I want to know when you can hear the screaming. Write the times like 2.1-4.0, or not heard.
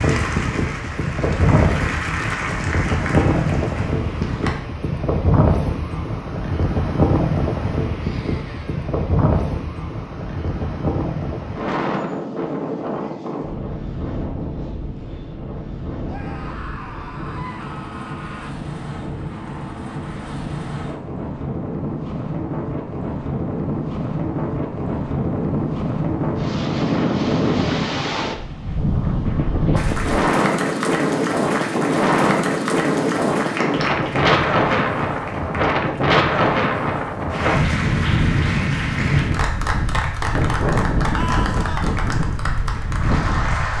8.0-8.8, 16.1-18.6, 41.1-42.0.